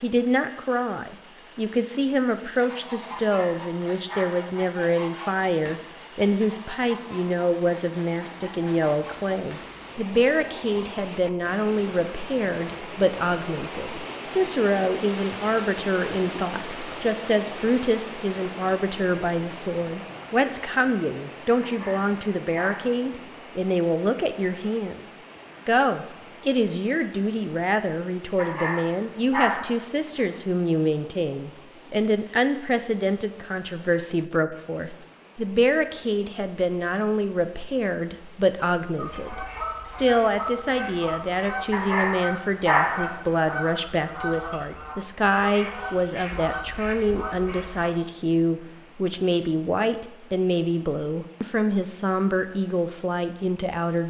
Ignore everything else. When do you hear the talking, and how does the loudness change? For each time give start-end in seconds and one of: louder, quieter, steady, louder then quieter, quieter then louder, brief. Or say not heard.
0.0-54.0 steady.